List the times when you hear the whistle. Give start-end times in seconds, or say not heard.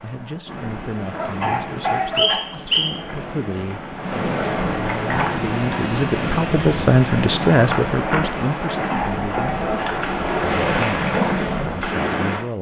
2.1-3.0.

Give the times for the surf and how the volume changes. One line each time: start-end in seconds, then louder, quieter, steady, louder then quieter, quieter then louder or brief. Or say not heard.
0.0-12.4 louder.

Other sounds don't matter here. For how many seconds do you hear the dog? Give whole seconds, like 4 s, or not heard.
3 s.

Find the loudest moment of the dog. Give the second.
2 s.